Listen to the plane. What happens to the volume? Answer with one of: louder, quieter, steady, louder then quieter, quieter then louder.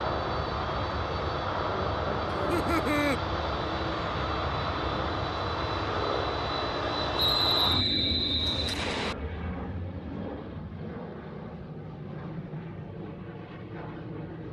quieter.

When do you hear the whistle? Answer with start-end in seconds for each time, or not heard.
7.2-9.2.